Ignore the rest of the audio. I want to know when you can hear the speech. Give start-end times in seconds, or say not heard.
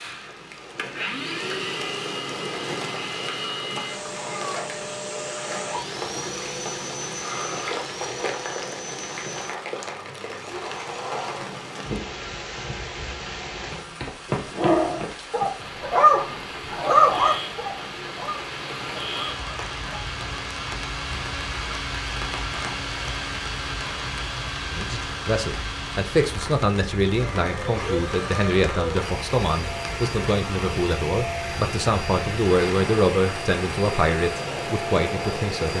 24.6-35.7.